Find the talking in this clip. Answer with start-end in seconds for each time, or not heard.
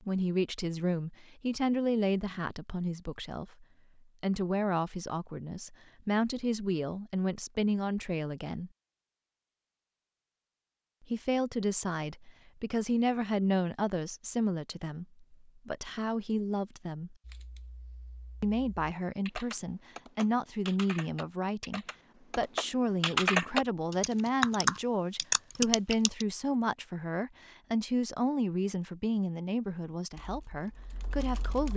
0.0-8.7, 11.0-17.1, 18.4-31.7.